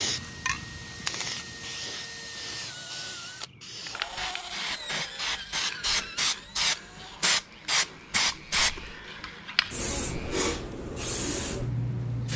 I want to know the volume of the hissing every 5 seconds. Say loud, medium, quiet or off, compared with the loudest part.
medium, loud, loud.